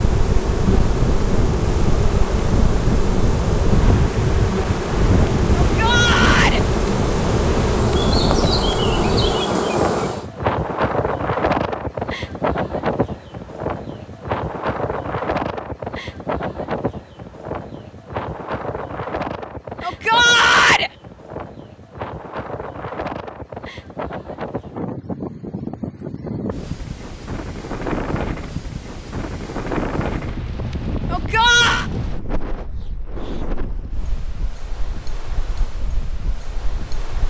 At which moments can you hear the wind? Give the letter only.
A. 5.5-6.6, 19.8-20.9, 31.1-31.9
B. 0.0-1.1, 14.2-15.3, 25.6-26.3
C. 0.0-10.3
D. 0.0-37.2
D.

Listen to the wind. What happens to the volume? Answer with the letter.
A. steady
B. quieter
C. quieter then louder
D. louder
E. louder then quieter
B.